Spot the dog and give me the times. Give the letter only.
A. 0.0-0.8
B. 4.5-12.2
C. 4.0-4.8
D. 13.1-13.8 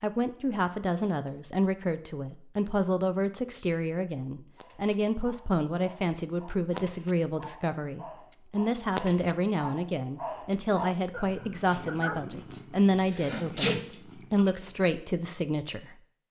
B.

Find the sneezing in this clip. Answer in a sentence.
You can hear the sneezing from 13.1 to 13.8 s.